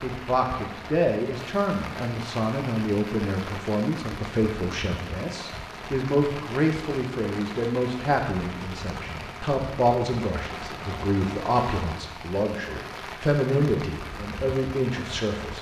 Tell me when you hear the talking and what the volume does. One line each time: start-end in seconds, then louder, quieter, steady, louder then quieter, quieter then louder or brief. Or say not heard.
0.0-15.5 steady.